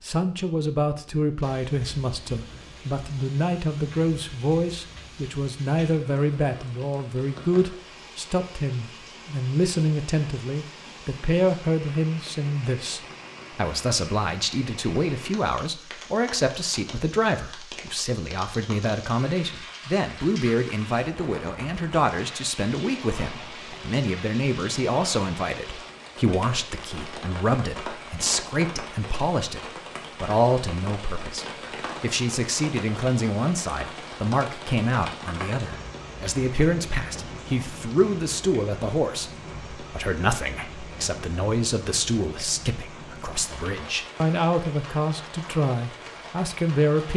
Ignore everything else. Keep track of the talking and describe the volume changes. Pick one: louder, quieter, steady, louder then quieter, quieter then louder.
steady.